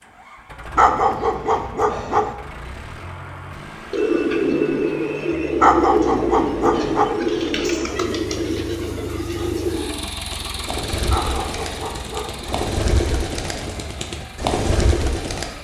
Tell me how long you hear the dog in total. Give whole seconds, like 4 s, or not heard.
5 s.